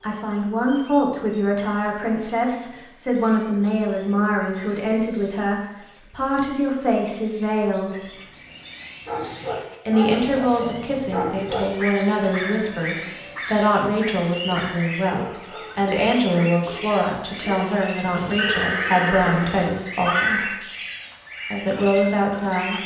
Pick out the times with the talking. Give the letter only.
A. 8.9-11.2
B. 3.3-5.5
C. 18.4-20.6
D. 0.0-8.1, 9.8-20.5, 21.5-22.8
D.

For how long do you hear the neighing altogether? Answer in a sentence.
You can hear the neighing for 2 seconds altogether.